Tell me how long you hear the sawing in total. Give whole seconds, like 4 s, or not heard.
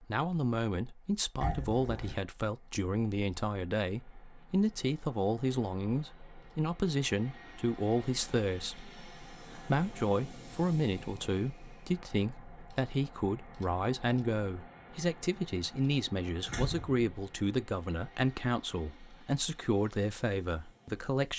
not heard.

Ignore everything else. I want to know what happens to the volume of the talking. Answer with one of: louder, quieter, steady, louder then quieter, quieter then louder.
steady.